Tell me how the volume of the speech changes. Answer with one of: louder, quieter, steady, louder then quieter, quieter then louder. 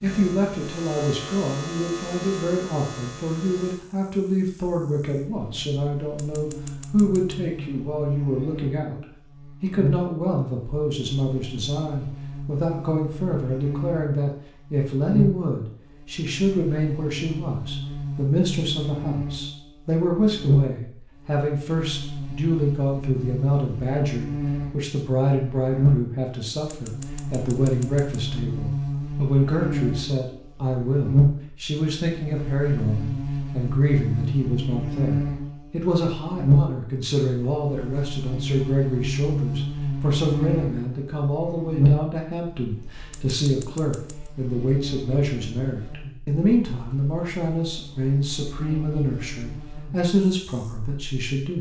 steady.